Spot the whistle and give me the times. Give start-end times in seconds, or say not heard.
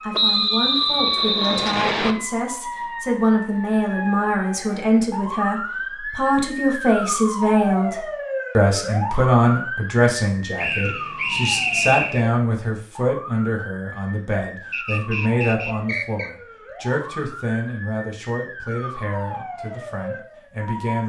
0.1-2.1, 10.6-12.2, 14.7-16.3.